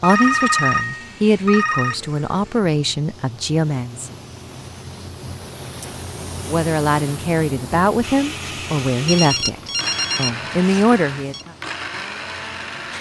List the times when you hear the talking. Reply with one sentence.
The talking can be heard from 0.0 to 4.2 s and from 6.5 to 11.5 s.